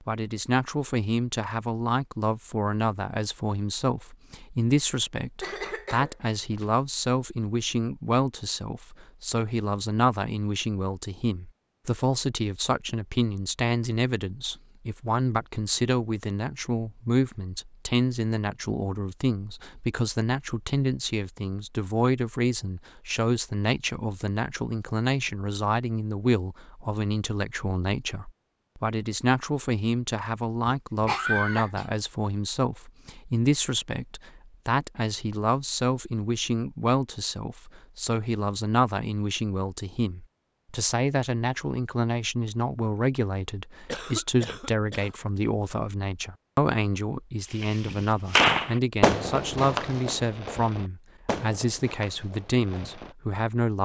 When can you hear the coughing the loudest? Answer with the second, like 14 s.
31 s.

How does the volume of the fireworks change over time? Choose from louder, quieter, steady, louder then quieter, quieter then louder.
quieter.